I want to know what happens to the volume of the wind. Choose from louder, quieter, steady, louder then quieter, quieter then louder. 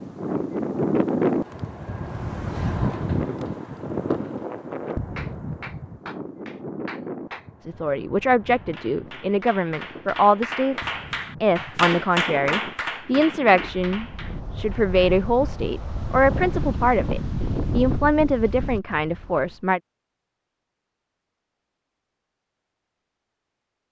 quieter then louder.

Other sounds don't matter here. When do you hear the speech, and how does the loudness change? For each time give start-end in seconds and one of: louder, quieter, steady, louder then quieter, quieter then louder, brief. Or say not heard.
7.7-19.8 steady.